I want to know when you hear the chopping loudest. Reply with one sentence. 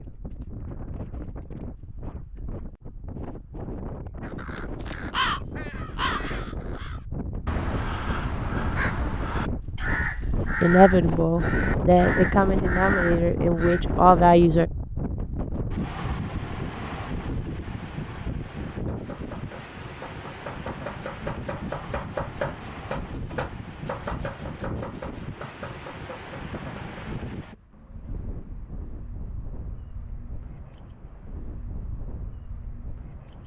The loudest moment of the chopping is at 22 seconds.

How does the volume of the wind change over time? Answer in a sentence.
The loudness of the wind goes up, then down.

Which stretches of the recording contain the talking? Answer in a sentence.
You can hear the talking from 10.6 to 14.7 s.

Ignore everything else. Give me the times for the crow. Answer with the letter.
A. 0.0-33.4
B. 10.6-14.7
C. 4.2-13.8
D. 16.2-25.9
C.